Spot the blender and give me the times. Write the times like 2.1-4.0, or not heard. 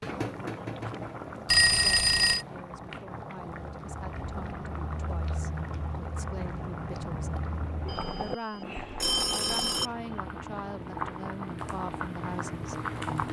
not heard.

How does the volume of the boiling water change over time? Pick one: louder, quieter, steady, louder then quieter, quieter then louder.
steady.